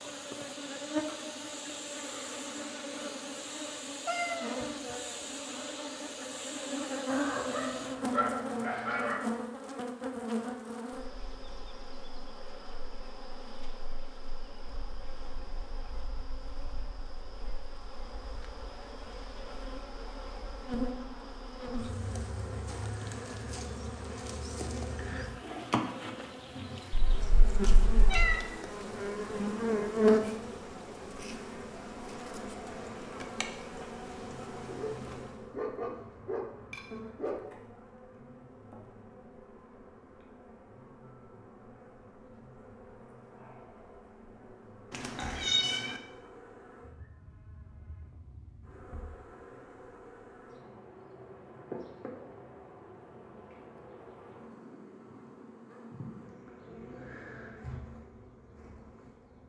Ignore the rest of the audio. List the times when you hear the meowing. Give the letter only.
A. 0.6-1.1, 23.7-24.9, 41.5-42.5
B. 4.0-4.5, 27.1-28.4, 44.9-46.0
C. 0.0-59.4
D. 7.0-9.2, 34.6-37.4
B.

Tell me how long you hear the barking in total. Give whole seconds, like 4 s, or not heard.
5 s.